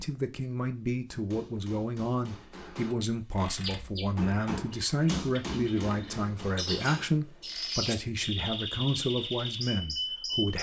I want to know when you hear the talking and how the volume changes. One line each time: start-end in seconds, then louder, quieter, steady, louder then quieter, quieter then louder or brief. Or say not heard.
0.0-10.5 steady.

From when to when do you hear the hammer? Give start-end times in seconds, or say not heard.
1.1-7.8.